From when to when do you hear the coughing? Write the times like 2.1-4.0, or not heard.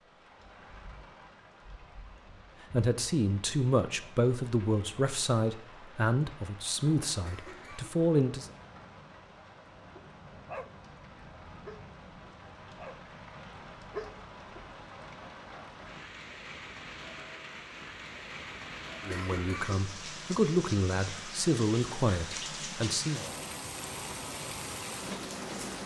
7.2-8.0, 19.1-19.8.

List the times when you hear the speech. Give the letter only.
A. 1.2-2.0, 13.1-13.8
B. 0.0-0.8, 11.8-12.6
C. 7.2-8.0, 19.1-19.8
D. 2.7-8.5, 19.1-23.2
D.